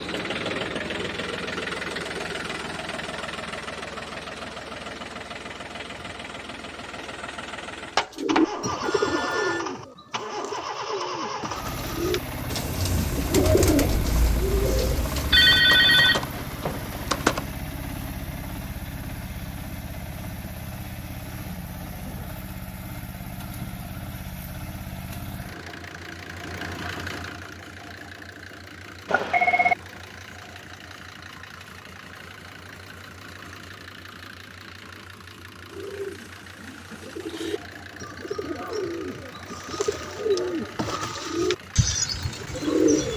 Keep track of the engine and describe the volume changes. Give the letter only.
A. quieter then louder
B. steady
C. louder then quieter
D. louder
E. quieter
E.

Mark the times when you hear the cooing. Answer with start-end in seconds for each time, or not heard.
8.2-15.6, 35.6-43.1.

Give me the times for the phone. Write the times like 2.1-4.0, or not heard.
8.0-9.7, 15.3-17.4, 29.1-29.8.